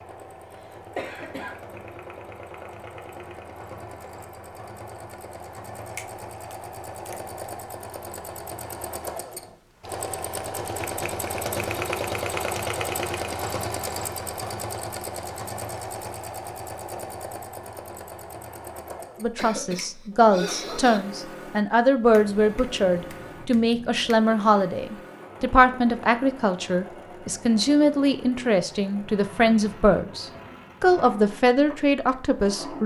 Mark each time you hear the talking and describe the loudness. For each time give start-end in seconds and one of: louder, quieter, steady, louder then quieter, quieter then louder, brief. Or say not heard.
19.2-32.8 steady.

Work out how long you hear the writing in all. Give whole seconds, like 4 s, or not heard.
not heard.